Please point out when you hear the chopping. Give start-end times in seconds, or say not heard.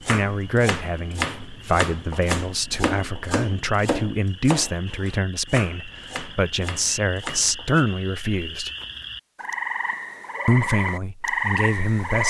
0.0-7.8.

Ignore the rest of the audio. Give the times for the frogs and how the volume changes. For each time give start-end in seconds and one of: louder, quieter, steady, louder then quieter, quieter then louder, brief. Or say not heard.
0.2-12.2 louder.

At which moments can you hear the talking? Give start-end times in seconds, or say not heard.
0.0-8.7, 10.4-12.2.